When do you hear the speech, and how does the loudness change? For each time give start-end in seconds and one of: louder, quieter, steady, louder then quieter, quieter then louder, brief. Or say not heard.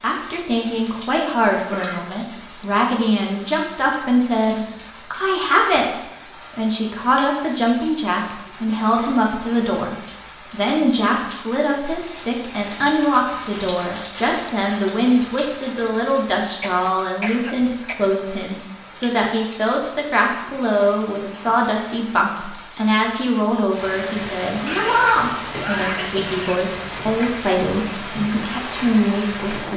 0.0-29.7 steady.